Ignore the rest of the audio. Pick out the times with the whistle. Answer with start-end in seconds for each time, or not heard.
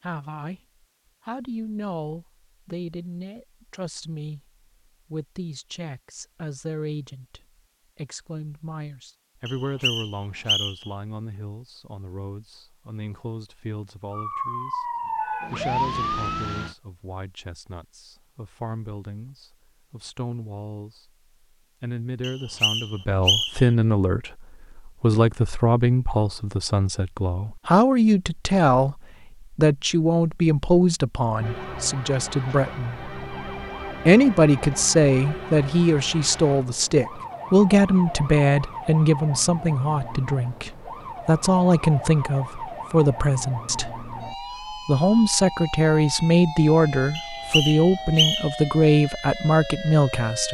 9.4-10.9, 22.2-23.7, 47.1-48.6.